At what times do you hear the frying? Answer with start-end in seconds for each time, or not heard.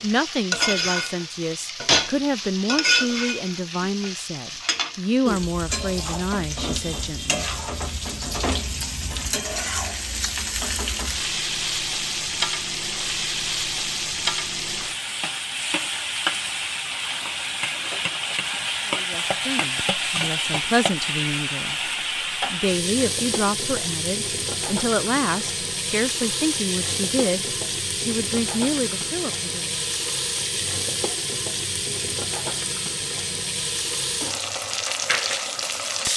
0.0-36.1.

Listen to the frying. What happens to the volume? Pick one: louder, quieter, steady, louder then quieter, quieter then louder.
steady.